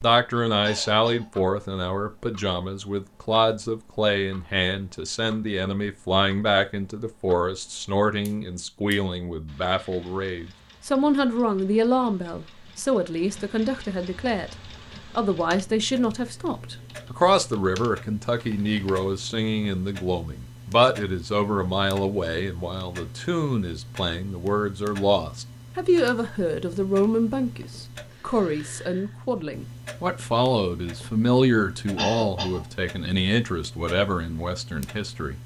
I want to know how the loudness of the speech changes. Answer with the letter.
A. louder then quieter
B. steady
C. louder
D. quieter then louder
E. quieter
B.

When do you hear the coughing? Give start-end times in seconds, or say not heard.
0.6-1.3, 31.9-32.6.